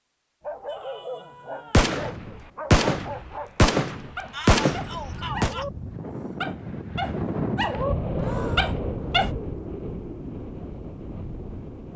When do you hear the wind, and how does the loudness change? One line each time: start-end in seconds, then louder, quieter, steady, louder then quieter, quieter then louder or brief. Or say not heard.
4.8-11.9 louder then quieter.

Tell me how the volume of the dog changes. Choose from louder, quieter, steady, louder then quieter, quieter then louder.
louder.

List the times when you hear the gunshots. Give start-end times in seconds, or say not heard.
1.7-5.5.